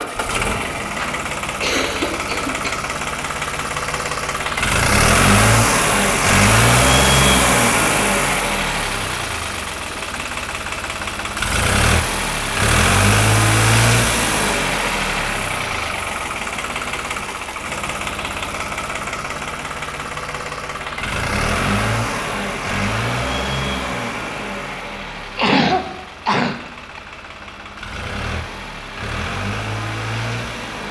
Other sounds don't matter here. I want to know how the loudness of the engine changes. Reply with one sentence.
The volume of the engine goes down.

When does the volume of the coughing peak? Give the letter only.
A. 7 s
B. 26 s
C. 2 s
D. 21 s
B.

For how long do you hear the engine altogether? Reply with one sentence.
The engine can be heard for 31 seconds in total.